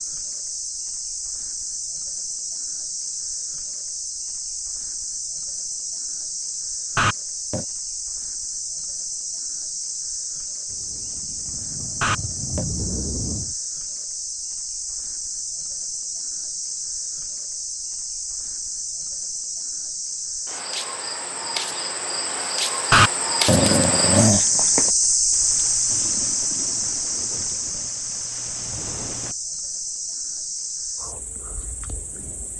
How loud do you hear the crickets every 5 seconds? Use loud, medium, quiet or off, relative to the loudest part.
medium, medium, medium, medium, loud, loud, medium.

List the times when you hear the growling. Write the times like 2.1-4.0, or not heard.
7.0-7.7, 12.0-12.7, 22.9-24.9.